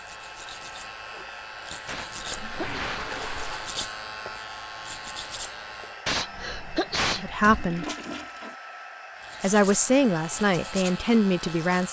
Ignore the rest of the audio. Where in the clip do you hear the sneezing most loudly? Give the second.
7 s.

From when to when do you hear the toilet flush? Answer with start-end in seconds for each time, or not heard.
2.4-3.8, 7.4-8.6.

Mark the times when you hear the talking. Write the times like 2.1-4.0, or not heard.
7.1-7.8, 9.4-11.8.